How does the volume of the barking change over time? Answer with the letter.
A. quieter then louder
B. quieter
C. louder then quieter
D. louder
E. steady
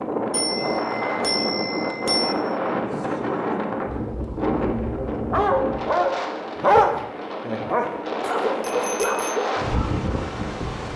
C.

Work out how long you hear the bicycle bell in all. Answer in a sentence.
You can hear the bicycle bell for 3 seconds altogether.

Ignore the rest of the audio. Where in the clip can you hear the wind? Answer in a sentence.
The wind can be heard from 0.0 to 10.9 s.